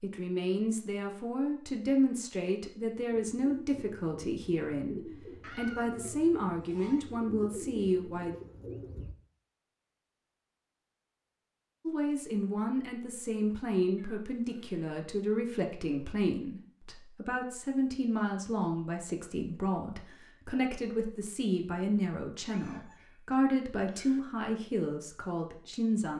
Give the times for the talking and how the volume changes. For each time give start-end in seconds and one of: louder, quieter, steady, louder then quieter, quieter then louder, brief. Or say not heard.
0.0-8.3 steady
11.8-26.1 steady.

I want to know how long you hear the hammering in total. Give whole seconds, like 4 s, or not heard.
not heard.